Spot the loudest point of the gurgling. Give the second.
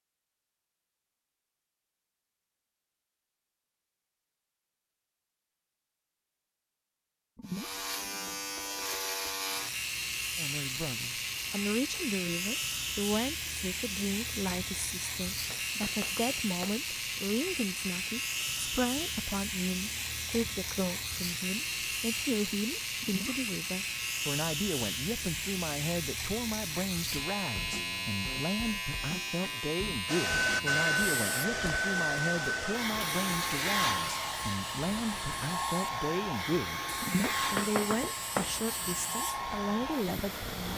37 s.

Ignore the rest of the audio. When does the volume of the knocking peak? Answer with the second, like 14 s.
38 s.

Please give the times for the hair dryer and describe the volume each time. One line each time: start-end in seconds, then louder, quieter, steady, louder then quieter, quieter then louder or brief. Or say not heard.
30.1-40.7 quieter.